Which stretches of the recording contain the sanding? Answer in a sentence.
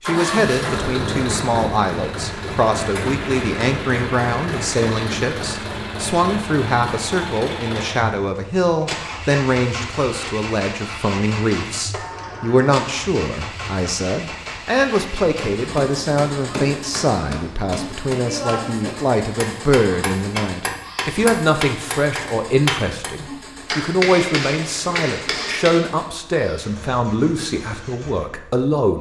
The sanding can't be heard in this clip.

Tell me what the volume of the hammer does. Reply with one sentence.
The volume of the hammer goes up.